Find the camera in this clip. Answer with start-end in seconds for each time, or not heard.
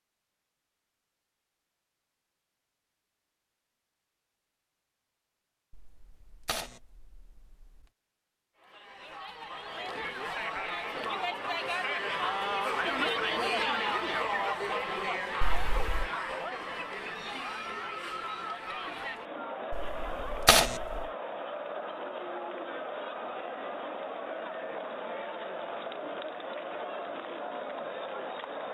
5.7-7.2, 15.4-16.1, 19.7-20.7.